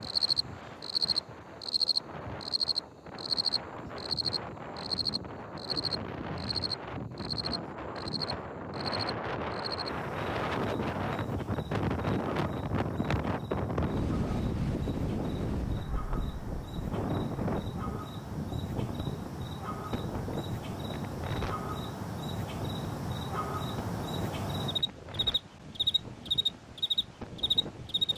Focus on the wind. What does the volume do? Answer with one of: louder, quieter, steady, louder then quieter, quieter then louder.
louder then quieter.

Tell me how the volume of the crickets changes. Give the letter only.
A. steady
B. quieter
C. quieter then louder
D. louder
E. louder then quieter
C.